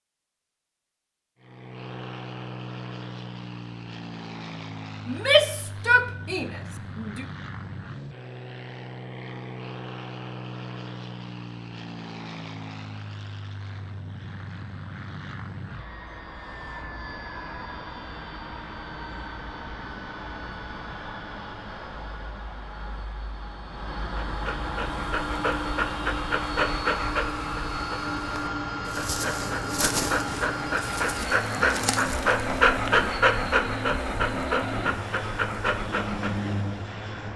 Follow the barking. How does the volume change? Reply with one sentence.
The volume of the barking goes up, then down.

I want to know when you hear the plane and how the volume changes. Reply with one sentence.
The plane can be heard from 1.4 to 37.3 s, getting louder.